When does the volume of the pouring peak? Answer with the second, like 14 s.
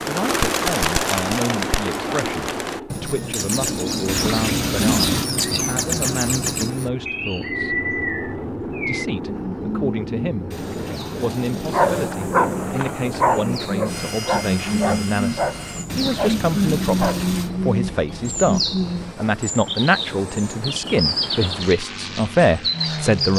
5 s.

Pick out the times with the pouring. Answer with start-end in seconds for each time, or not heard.
4.0-5.3, 10.5-12.2, 15.8-17.5.